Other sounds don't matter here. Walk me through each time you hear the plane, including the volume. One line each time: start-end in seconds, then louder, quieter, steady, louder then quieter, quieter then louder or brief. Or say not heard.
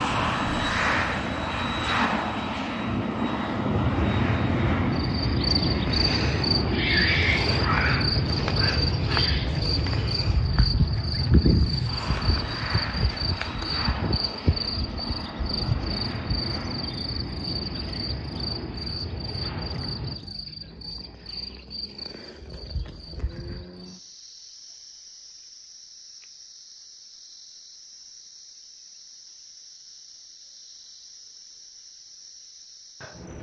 0.0-20.2 quieter.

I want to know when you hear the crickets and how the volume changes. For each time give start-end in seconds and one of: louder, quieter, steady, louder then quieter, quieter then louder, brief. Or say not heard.
4.9-33.3 quieter.